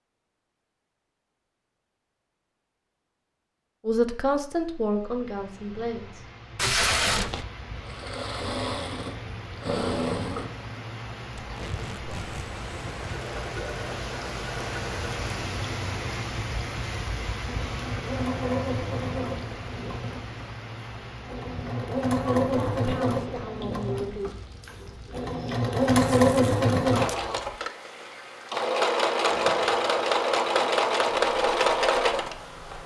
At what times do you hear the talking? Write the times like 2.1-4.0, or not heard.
3.9-6.2, 22.4-24.4.